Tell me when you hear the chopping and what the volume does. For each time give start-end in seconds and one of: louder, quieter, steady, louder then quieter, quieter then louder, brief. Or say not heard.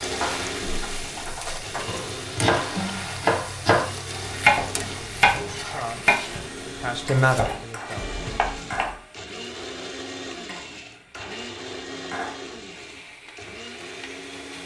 0.2-8.9 louder then quieter.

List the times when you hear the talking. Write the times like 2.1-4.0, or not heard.
5.5-8.2.